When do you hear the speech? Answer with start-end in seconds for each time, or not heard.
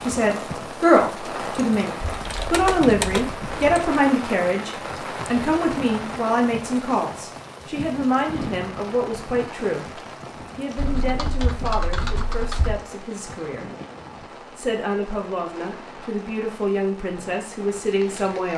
0.1-4.7, 5.3-13.7, 14.6-18.5.